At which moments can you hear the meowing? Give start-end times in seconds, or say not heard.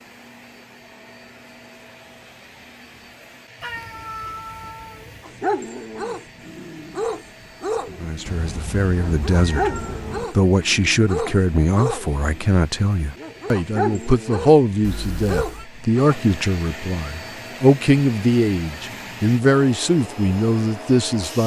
3.6-5.3, 8.2-10.2, 14.8-15.7.